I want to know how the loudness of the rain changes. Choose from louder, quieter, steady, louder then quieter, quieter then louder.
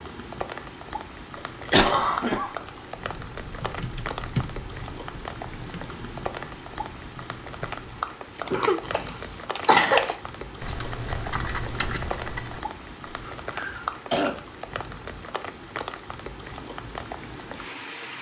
steady.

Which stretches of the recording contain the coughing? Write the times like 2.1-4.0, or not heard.
1.7-2.5, 8.5-10.1, 13.2-14.4.